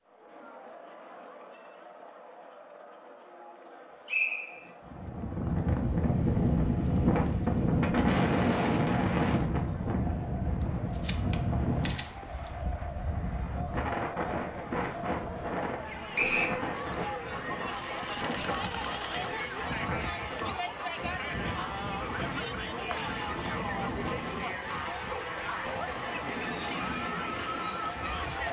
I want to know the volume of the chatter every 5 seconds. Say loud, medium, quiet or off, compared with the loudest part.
quiet, quiet, medium, loud, loud, loud.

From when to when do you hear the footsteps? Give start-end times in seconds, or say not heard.
not heard.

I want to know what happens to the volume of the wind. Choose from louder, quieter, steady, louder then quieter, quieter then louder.
quieter.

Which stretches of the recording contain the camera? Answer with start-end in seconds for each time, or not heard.
10.6-12.5, 17.7-19.3.